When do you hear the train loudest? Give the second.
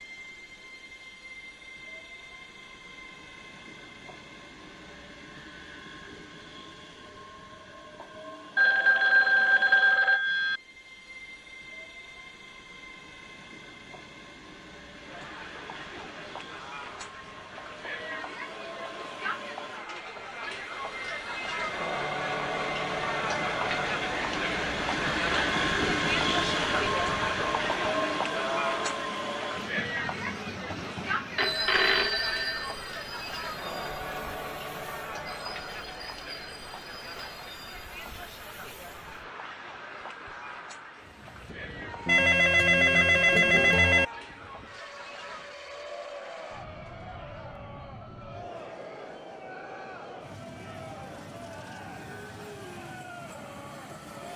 26 s.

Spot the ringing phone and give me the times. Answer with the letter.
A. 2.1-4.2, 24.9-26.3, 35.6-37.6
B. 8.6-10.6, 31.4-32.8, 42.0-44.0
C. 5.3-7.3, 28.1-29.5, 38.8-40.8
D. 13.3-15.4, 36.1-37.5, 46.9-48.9
B.